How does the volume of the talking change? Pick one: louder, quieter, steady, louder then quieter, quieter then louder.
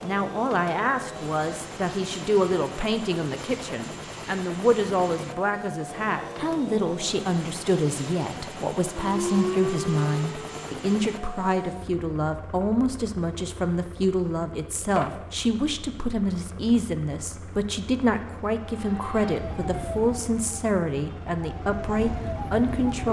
steady.